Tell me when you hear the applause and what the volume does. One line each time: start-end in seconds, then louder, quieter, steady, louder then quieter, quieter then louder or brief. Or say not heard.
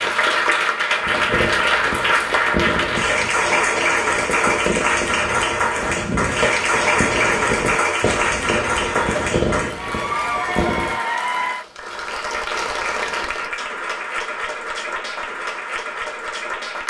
0.0-16.8 quieter.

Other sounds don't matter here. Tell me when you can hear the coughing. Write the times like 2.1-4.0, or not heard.
not heard.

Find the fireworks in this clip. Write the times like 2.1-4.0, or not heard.
1.0-11.0.